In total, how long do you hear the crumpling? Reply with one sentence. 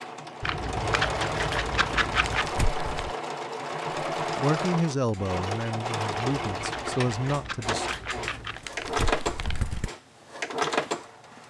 The crumpling can be heard for 4 seconds in total.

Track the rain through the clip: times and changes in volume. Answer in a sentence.
The rain can't be heard in this clip.